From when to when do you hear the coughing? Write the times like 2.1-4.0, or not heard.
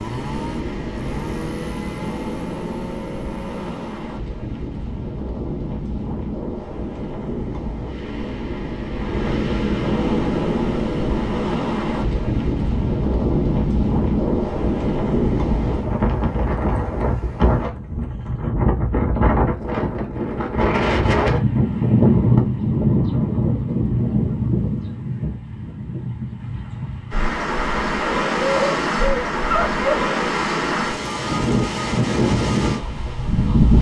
not heard.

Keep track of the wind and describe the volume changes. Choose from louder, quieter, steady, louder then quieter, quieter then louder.
louder.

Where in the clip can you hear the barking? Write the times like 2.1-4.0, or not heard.
28.4-30.0.